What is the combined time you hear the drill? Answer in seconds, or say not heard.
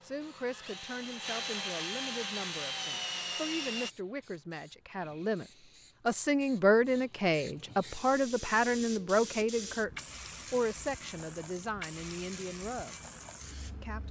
4 s.